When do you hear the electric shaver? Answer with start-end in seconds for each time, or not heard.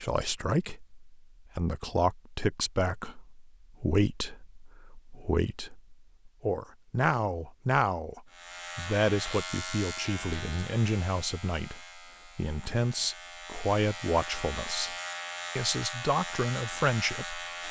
8.3-17.6.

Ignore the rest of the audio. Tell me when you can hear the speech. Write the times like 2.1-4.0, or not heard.
0.0-14.9, 15.6-17.4.